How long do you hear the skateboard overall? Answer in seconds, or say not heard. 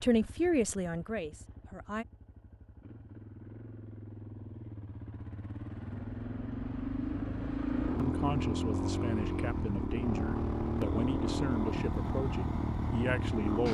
not heard.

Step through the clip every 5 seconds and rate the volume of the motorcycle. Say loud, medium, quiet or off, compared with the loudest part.
quiet, loud, loud.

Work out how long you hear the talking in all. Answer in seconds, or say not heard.
8 s.